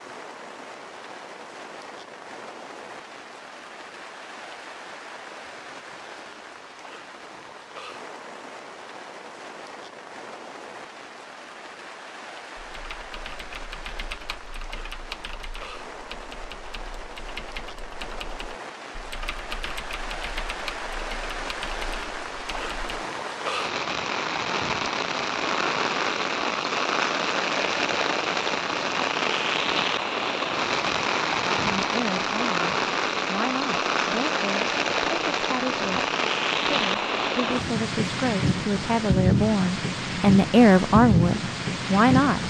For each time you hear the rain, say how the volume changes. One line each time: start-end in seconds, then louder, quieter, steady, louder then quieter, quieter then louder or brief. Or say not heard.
0.0-42.4 louder.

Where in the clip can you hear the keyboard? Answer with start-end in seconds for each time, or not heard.
12.6-23.1.